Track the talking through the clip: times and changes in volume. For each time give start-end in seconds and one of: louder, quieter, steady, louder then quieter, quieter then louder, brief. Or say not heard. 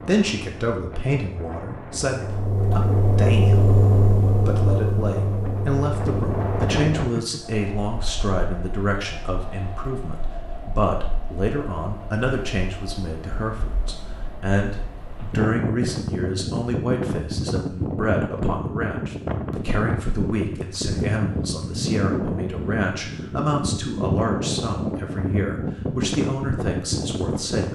0.1-27.6 steady.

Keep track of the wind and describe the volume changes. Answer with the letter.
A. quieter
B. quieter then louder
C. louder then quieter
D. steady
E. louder
E.